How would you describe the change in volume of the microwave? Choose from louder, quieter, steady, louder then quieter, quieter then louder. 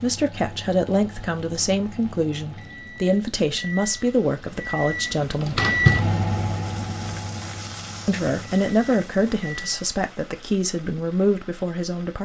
louder then quieter.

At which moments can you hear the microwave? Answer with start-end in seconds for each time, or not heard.
0.0-9.8.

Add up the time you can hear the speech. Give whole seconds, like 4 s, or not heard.
10 s.